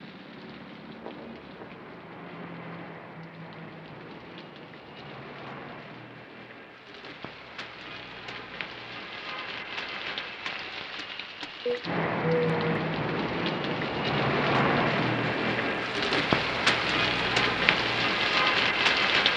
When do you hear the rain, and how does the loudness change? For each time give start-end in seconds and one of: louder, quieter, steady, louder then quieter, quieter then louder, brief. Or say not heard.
0.0-19.3 louder.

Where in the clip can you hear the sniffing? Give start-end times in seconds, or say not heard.
11.7-12.8.